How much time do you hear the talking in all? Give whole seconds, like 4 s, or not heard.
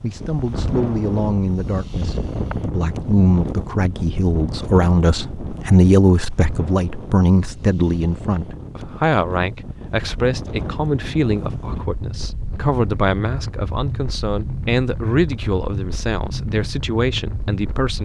18 s.